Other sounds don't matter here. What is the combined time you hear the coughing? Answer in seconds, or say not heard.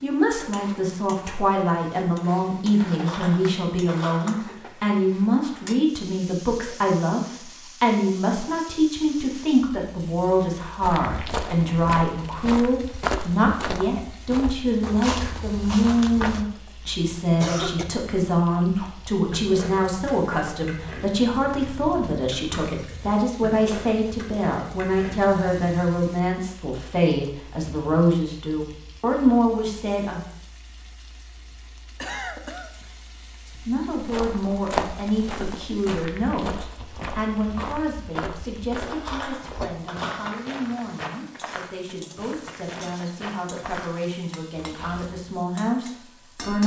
2 s.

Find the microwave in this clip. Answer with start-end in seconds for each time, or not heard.
not heard.